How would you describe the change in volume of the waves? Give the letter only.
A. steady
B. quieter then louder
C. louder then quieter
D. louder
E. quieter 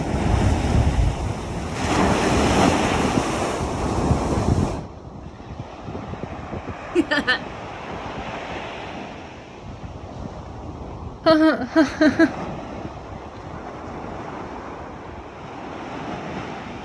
E.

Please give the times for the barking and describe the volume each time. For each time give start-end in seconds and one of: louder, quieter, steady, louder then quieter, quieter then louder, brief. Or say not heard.
not heard.